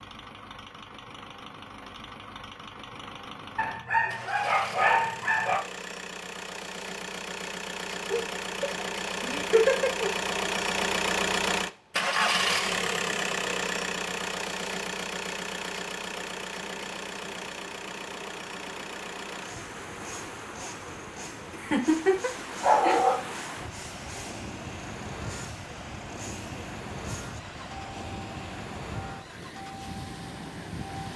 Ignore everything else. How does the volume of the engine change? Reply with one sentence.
The volume of the engine goes up, then down.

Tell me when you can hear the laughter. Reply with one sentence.
The laughter can be heard from 8.1 to 10.1 s and from 21.5 to 23.0 s.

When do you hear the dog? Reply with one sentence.
You can hear the dog from 3.5 to 5.6 s and from 22.6 to 23.6 s.